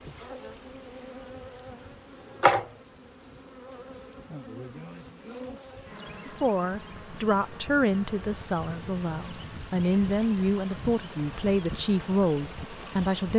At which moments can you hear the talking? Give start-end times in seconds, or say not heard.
6.2-13.3.